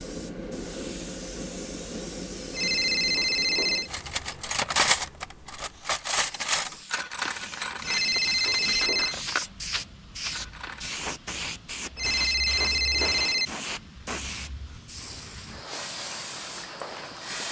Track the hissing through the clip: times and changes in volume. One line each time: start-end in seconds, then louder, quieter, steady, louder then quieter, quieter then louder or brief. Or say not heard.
0.0-17.4 quieter then louder.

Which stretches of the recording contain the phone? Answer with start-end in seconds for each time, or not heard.
2.5-3.9, 7.8-9.2, 11.9-13.5.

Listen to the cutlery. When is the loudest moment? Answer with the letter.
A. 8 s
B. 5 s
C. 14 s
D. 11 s
B.